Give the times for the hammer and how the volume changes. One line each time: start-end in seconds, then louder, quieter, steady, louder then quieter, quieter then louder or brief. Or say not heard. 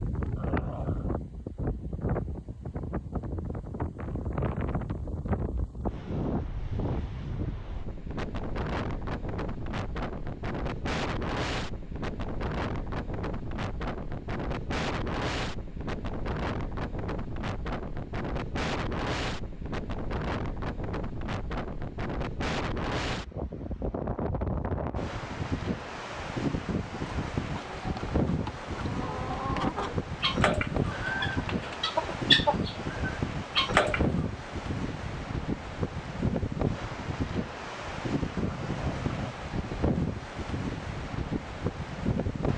not heard.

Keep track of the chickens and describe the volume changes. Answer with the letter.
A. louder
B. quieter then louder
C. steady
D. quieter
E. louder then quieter
A.